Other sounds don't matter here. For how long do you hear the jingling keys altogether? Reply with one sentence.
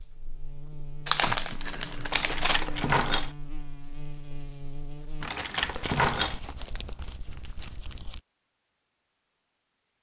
The jingling keys can be heard for 2 seconds in total.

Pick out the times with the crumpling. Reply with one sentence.
You can hear the crumpling from 1.1 to 2.7 s and from 5.6 to 8.2 s.